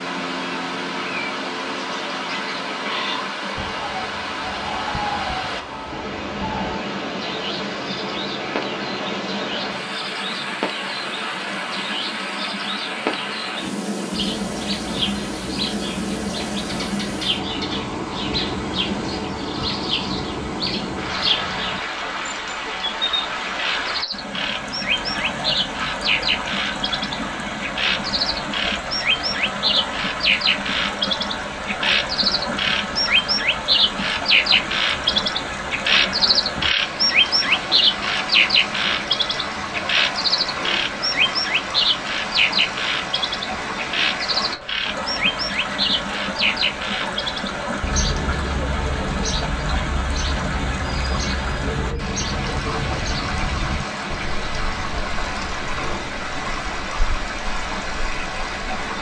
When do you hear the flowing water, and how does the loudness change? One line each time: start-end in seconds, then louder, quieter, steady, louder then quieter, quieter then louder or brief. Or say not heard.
0.0-58.9 steady.